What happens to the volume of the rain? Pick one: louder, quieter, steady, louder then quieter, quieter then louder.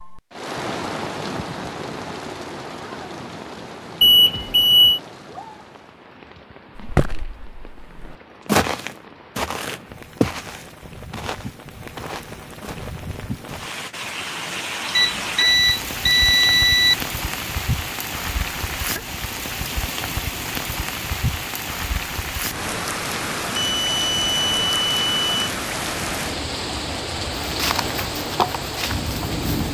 quieter then louder.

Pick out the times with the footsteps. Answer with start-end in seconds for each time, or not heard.
6.8-13.9, 27.4-29.6.